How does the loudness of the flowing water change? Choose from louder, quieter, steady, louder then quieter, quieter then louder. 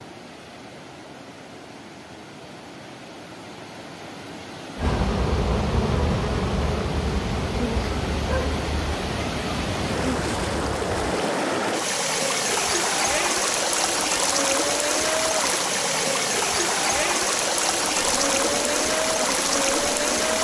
louder.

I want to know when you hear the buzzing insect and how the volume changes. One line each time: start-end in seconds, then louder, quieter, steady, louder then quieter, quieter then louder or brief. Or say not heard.
4.8-11.1 quieter
17.9-20.3 brief.